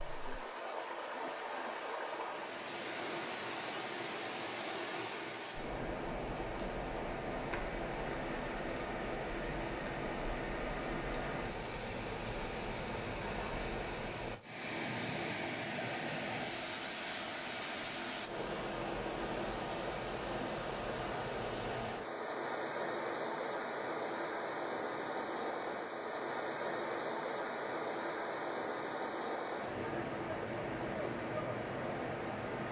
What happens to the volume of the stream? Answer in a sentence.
The loudness of the stream stays about the same.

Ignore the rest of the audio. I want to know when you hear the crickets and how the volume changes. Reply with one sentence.
You can hear the crickets from 0.0 to 32.6 s, at a steady volume.